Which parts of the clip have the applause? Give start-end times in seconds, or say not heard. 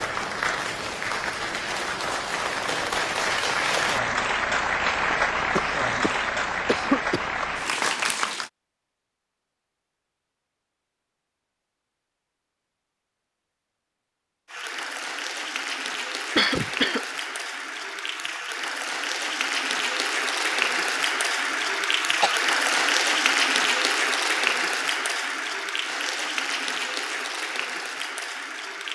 0.0-8.5, 14.4-28.9.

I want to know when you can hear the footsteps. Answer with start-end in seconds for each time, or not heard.
not heard.